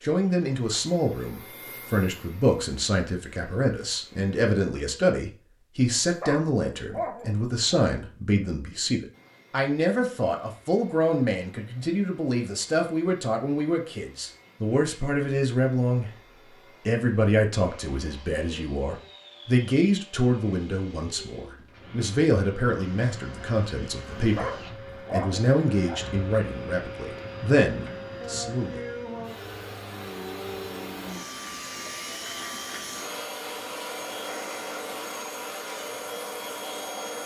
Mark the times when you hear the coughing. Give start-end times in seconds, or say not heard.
not heard.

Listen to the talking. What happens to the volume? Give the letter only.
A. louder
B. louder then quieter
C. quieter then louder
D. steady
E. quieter
D.